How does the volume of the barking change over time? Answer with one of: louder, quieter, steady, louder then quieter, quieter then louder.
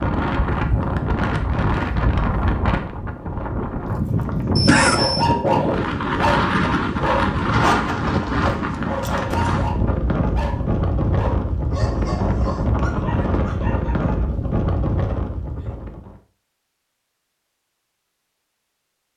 quieter.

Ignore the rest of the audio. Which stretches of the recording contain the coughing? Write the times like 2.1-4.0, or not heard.
4.5-5.3.